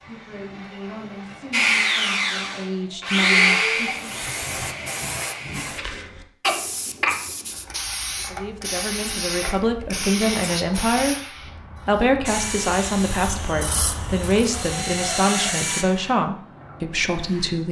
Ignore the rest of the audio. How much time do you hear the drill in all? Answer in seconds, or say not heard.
8 s.